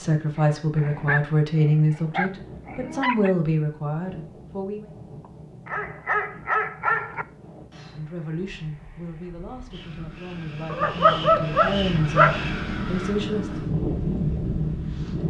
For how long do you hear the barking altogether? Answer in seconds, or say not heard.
6 s.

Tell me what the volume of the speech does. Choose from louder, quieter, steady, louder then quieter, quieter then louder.
quieter then louder.